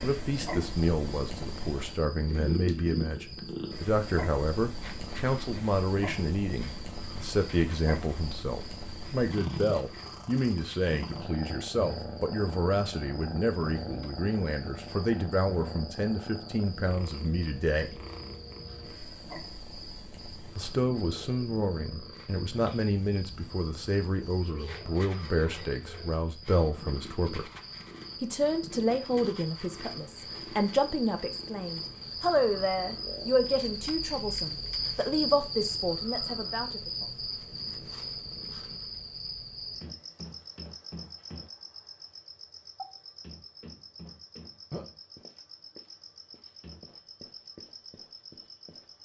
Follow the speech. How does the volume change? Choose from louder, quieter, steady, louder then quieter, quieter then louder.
steady.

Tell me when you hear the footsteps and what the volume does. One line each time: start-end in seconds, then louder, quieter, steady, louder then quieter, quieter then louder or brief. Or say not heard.
not heard.